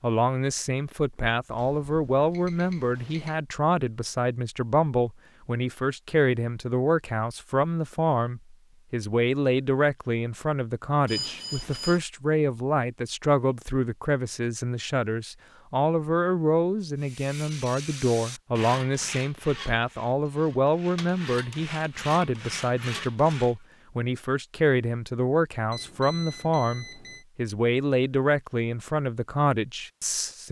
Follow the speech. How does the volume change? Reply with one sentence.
The loudness of the speech stays about the same.